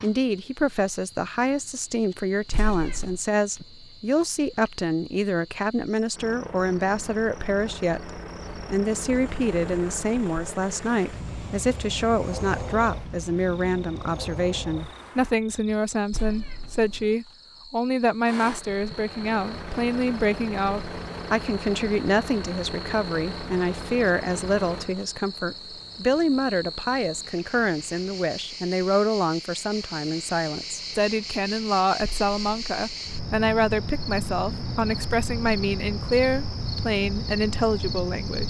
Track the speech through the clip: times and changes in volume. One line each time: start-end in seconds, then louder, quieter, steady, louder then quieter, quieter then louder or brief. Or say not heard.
0.0-38.4 steady.